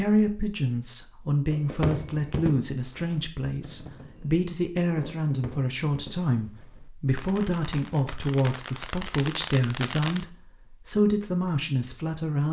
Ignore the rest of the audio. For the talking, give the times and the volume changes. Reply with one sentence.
The talking can be heard from 0.0 to 12.4 s, at a steady volume.